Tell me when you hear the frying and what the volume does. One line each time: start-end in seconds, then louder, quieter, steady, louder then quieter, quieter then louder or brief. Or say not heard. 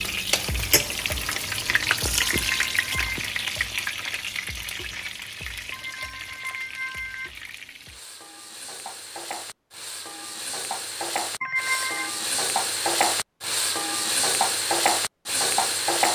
0.0-16.1 quieter then louder.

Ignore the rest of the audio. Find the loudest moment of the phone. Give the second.
12 s.